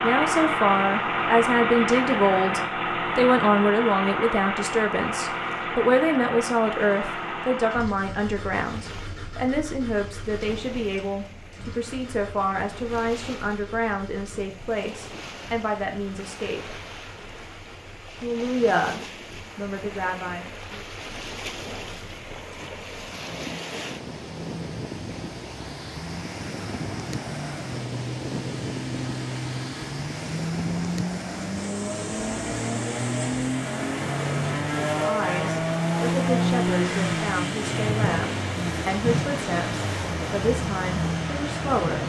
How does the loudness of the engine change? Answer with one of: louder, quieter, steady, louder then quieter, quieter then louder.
quieter then louder.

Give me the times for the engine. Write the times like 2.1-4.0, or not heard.
0.0-42.0.